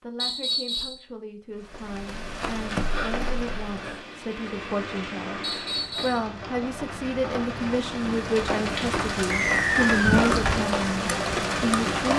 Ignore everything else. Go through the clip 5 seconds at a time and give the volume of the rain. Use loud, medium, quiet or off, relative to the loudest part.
medium, medium, loud.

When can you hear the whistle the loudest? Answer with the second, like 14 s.
10 s.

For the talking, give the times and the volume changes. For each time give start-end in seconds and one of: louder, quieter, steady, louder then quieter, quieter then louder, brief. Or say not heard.
0.0-12.1 louder.